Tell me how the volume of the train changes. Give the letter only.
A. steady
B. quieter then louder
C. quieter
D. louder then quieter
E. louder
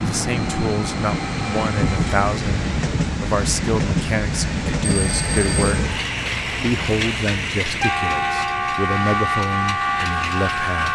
A.